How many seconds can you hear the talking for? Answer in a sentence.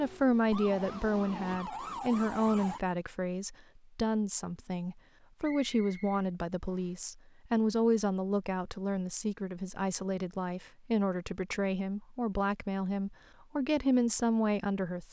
You can hear the talking for 15 seconds altogether.